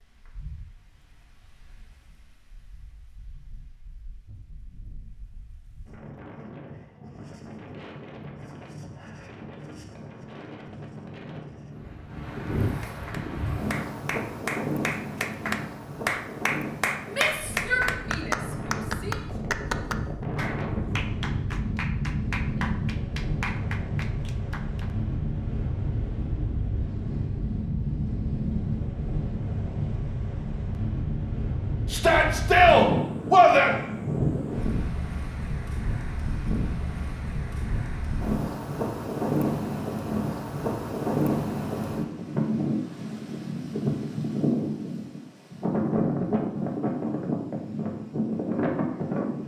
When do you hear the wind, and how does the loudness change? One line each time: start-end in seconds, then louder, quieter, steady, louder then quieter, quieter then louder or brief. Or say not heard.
0.0-49.4 louder.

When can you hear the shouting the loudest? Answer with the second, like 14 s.
33 s.